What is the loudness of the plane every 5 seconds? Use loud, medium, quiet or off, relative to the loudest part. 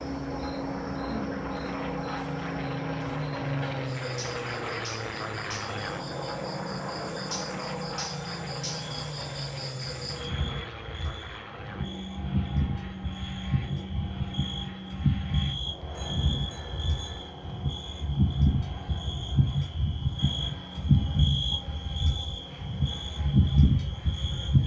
loud, loud, medium, medium, quiet.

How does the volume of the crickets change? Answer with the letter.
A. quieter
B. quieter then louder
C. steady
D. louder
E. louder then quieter
D.